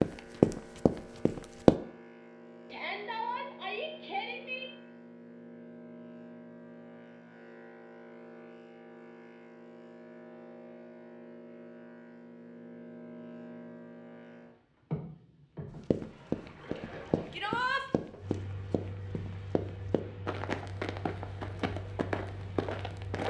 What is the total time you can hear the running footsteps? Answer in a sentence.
The running footsteps can be heard for 9 seconds in total.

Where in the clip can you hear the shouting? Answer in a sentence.
The shouting can be heard from 2.7 to 4.7 s and from 17.3 to 17.9 s.